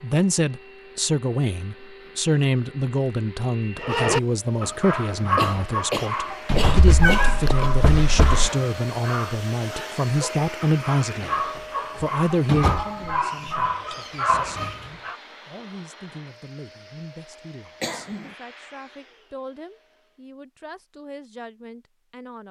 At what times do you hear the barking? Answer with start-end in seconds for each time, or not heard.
3.8-15.2.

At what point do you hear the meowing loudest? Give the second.
7 s.